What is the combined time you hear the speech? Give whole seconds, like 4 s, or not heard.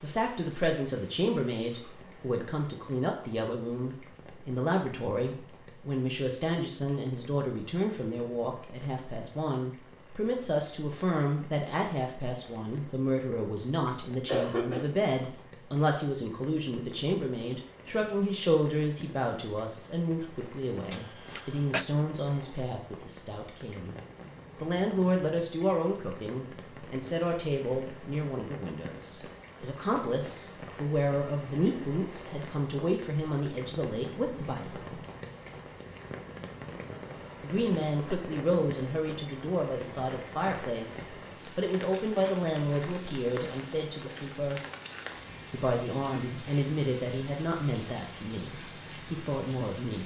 46 s.